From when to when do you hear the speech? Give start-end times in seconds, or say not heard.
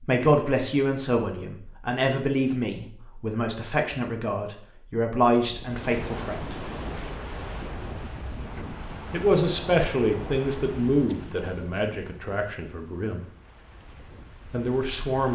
0.0-6.5, 9.1-13.3, 14.5-15.3.